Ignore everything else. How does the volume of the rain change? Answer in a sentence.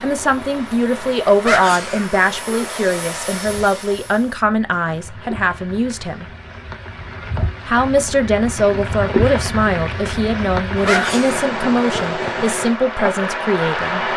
The loudness of the rain goes up.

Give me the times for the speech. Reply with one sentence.
You can hear the speech from 0.0 to 6.2 s and from 7.7 to 14.1 s.